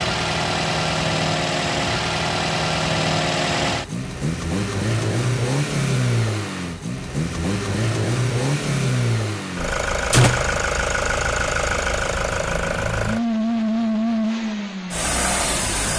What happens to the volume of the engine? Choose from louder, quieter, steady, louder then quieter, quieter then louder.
steady.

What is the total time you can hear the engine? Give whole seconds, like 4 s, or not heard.
16 s.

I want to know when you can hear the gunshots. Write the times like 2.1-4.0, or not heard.
10.1-10.6.